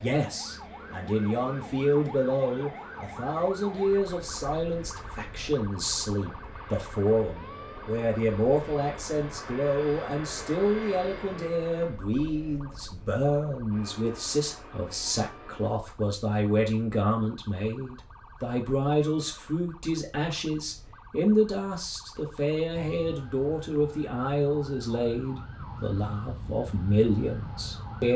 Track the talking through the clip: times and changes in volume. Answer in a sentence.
The talking can be heard from 0.0 to 28.1 s, at a steady volume.